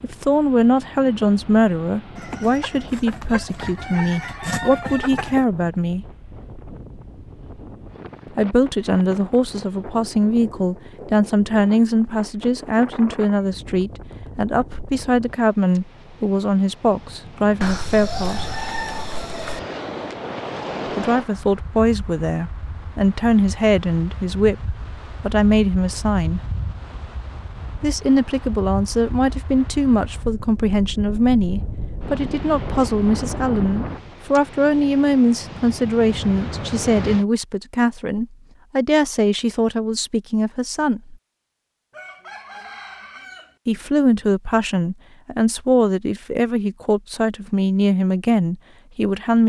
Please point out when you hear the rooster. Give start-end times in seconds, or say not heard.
2.1-5.5, 17.6-19.6, 41.9-43.5.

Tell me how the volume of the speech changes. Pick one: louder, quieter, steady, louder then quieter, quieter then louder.
steady.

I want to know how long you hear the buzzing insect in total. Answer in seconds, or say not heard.
not heard.